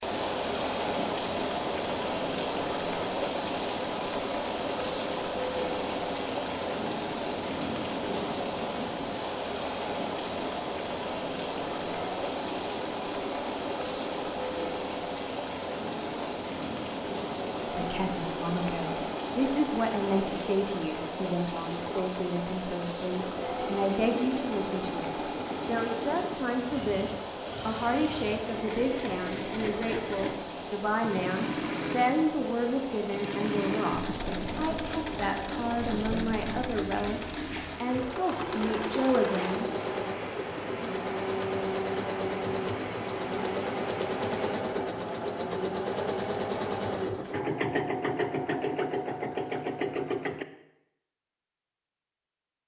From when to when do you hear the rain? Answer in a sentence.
The rain can be heard from 0.0 to 44.5 s.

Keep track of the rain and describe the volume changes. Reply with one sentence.
The volume of the rain goes down.